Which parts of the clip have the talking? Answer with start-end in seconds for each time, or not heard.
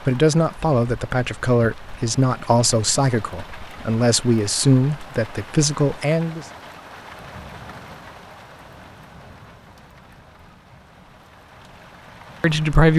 0.1-6.5, 12.4-12.9.